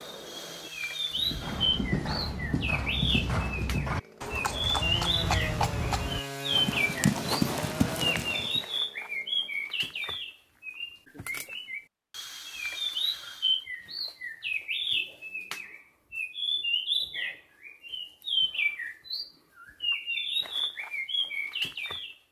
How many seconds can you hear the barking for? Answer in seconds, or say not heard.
not heard.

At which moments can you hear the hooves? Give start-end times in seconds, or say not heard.
1.1-8.6.